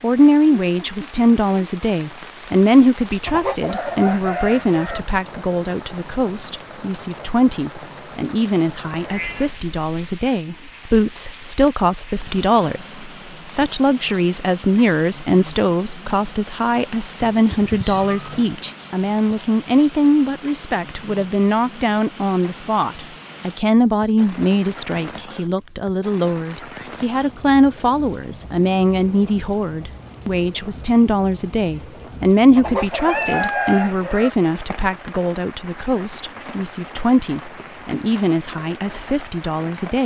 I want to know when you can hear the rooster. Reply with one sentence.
The rooster can be heard from 3.2 to 5.0 s and from 32.5 to 34.3 s.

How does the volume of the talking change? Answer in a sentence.
The loudness of the talking stays about the same.